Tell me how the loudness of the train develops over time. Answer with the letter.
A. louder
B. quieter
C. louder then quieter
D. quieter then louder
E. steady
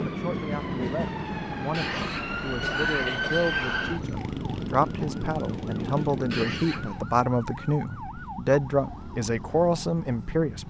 D.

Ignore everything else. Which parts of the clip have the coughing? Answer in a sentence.
You can hear the coughing from 1.7 to 3.8 s and from 6.3 to 7.0 s.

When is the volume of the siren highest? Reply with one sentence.
The volume of the siren peaks at 3 seconds.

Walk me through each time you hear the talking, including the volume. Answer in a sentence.
You can hear the talking from 0.0 to 10.6 s, getting louder.